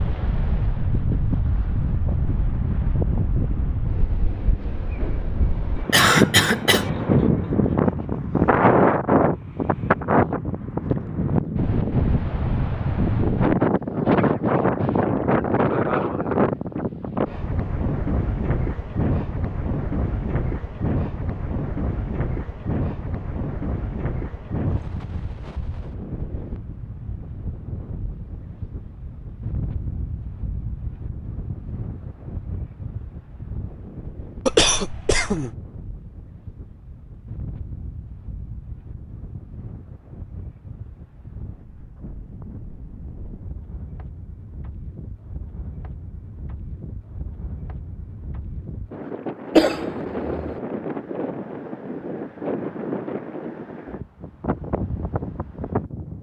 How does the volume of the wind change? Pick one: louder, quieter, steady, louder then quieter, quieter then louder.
quieter then louder.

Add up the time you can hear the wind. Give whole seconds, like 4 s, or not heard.
56 s.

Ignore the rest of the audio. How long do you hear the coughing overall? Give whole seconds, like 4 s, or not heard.
3 s.